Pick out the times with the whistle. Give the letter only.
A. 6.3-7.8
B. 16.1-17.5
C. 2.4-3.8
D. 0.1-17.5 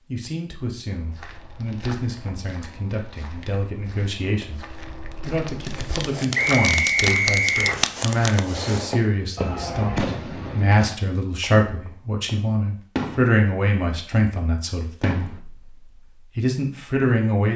A.